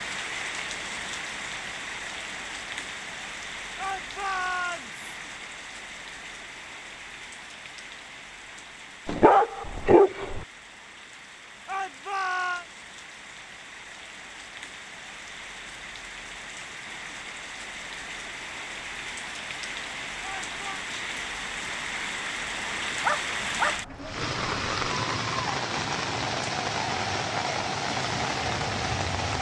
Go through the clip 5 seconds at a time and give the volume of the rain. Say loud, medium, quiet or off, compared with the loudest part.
medium, quiet, quiet, medium, loud, loud.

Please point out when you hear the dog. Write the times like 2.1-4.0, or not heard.
9.1-10.4, 23.0-23.8.